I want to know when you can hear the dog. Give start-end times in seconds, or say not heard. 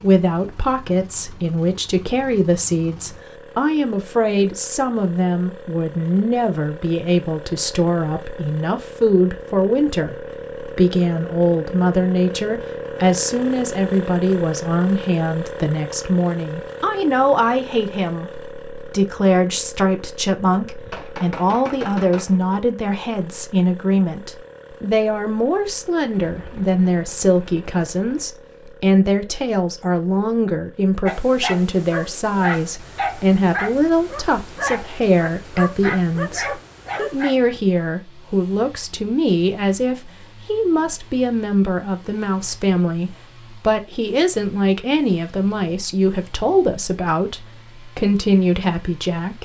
31.1-37.4.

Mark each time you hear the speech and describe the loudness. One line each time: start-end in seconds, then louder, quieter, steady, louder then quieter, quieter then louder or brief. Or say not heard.
0.0-49.4 steady.